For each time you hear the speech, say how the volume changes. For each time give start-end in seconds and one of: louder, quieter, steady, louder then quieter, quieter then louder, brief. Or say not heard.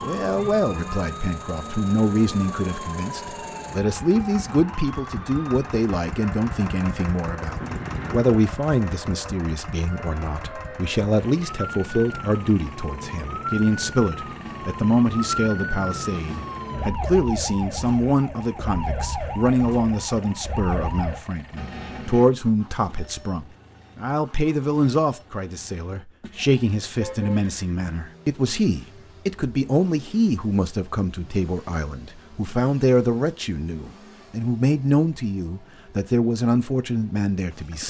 0.0-37.8 steady.